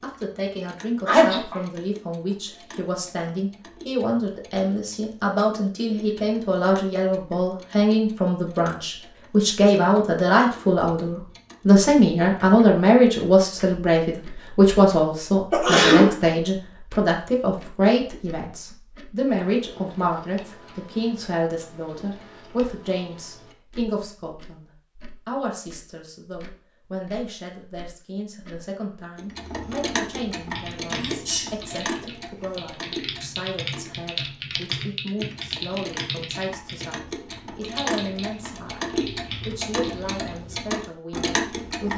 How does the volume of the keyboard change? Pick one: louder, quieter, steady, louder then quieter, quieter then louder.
louder then quieter.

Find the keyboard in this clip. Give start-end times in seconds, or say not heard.
30.4-40.4.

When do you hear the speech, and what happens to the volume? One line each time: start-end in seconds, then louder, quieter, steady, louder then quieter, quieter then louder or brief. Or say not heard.
0.0-24.6 louder then quieter
25.2-41.9 steady.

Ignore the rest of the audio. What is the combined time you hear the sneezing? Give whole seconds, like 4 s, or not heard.
2 s.